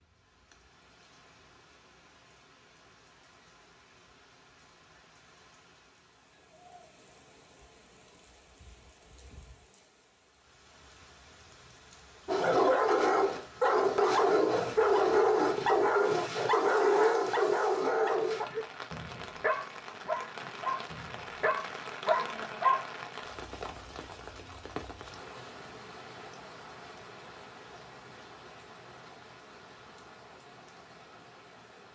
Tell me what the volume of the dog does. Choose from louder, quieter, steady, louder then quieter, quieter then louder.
quieter.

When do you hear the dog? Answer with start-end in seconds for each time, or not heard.
12.2-22.9.